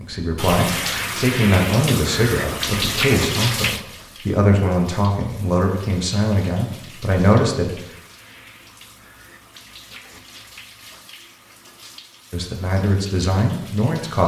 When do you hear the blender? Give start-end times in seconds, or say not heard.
not heard.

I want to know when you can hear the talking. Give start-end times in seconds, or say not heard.
0.0-7.7, 12.3-14.2.